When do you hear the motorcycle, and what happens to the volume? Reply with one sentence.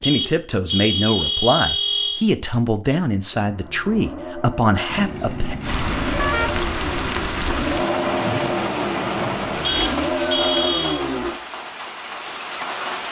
The motorcycle can be heard from 3.4 to 11.3 s, getting louder.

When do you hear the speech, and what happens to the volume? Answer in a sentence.
The speech can be heard from 0.0 to 5.5 s, at a steady volume.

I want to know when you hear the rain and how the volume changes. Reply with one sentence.
The rain can be heard from 5.6 to 13.0 s, getting quieter.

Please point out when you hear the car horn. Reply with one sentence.
The car horn can be heard from 0.0 to 2.2 s, from 4.8 to 6.6 s and from 9.6 to 11.1 s.